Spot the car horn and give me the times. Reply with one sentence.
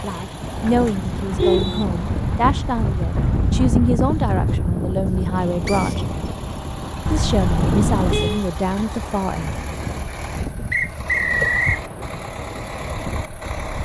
The car horn can be heard from 1.1 to 2.5 s and from 7.0 to 8.4 s.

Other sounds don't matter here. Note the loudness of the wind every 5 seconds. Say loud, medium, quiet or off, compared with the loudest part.
loud, medium, medium.